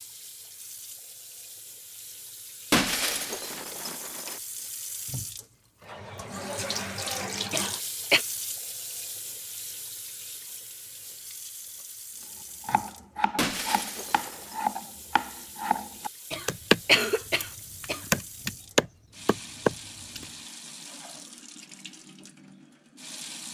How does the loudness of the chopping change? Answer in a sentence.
The volume of the chopping goes up.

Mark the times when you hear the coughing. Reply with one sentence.
You can hear the coughing from 7.5 to 8.2 s and from 16.3 to 18.1 s.